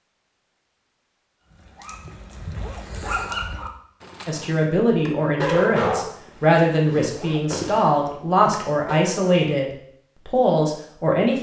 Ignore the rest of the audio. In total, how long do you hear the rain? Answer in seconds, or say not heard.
not heard.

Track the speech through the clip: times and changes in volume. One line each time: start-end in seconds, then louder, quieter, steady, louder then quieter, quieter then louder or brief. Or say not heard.
4.2-11.3 steady.